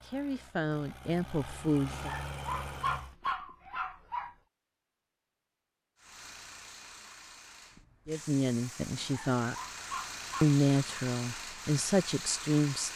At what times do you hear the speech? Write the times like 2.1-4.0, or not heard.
0.0-2.1, 8.1-9.6, 10.4-12.9.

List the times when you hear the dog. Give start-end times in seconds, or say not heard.
1.9-4.3, 8.9-10.6.